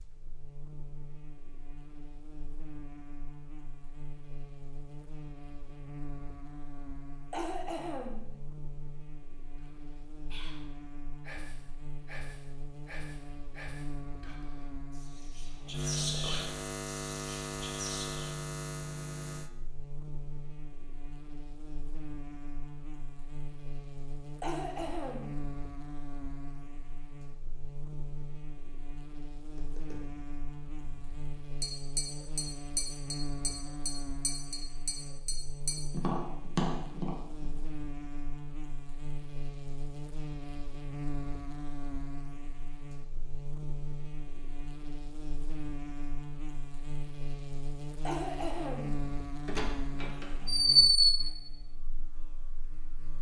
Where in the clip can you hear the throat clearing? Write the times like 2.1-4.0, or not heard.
7.3-8.3, 24.4-25.4, 48.0-49.0.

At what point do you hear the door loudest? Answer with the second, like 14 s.
51 s.